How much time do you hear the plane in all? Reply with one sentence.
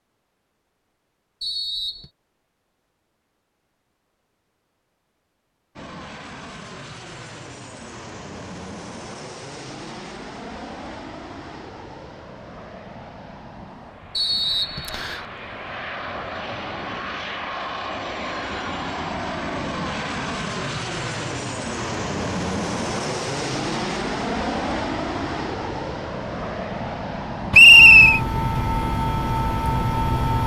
You can hear the plane for 25 seconds altogether.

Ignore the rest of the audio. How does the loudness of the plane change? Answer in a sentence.
The volume of the plane goes up.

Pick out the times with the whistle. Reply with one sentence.
The whistle can be heard from 1.4 to 2.1 s, from 14.2 to 15.2 s and from 27.5 to 28.2 s.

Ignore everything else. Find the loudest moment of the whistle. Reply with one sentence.
The loudest moment of the whistle is at 28 seconds.